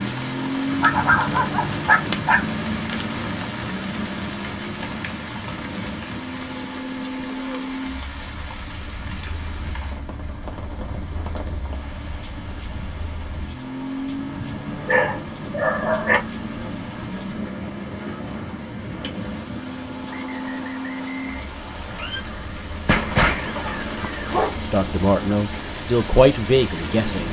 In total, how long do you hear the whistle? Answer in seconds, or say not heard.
2 s.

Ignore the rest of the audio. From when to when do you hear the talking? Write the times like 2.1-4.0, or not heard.
24.7-27.2.